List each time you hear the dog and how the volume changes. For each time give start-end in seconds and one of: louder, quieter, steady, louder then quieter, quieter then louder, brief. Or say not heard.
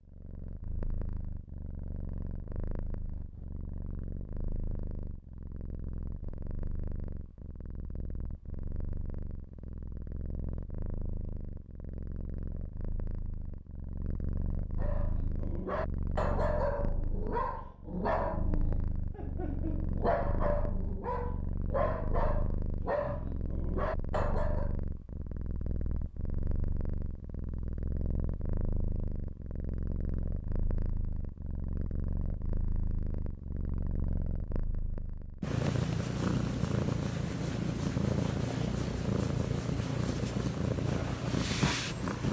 14.8-24.8 steady.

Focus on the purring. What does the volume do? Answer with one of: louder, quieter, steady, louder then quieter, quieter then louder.
louder.